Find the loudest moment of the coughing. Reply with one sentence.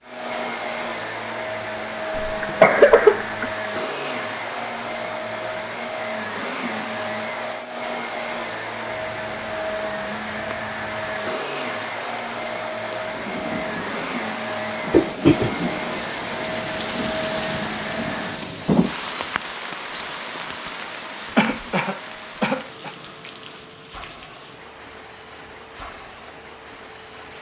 The volume of the coughing peaks at 3 seconds.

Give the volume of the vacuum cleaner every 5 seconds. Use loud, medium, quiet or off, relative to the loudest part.
loud, loud, loud, loud, quiet, quiet.